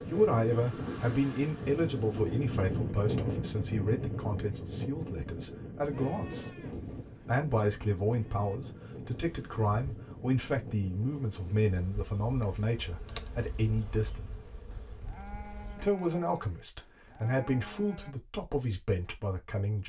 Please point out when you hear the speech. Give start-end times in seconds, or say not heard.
0.0-6.5, 7.2-14.2, 15.8-19.8.